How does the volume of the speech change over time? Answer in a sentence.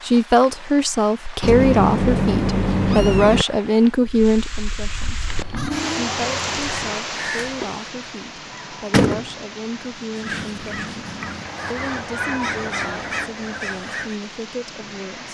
The loudness of the speech goes down.